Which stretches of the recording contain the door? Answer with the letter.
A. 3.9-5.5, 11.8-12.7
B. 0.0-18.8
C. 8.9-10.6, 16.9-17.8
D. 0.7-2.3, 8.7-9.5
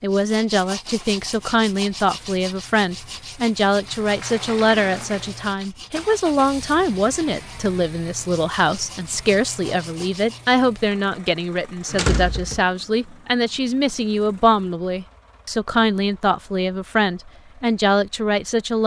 A.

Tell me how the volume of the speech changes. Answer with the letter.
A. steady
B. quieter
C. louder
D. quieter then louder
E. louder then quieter
A.